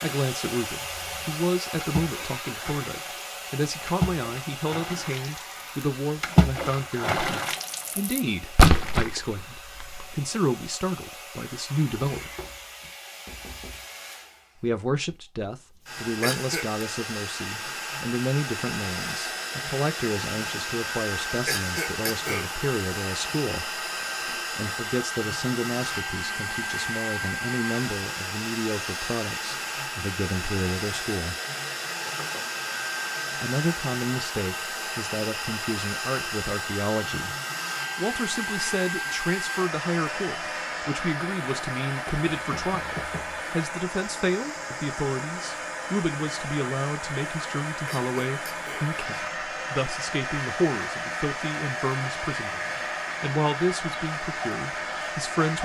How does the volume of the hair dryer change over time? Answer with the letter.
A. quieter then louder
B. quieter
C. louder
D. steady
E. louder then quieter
C.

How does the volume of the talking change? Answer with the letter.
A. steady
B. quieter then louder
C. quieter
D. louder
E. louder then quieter
A.